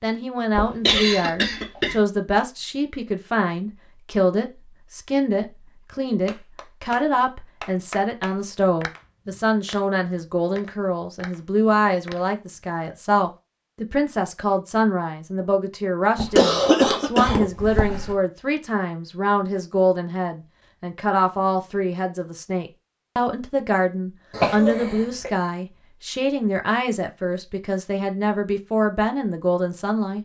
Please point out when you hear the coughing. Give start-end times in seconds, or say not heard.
0.6-1.9, 16.1-18.1, 24.3-25.3.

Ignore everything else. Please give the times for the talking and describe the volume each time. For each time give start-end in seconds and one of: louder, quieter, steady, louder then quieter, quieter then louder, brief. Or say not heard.
0.0-30.2 steady.